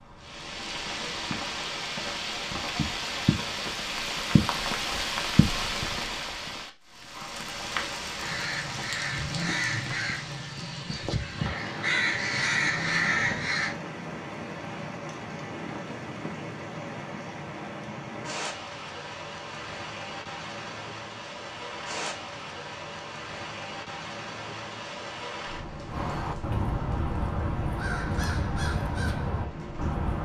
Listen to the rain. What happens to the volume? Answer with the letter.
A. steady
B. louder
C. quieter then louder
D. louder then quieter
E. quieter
E.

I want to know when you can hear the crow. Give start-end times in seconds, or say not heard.
8.2-13.8, 25.9-30.1.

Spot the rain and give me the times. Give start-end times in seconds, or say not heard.
0.0-30.1.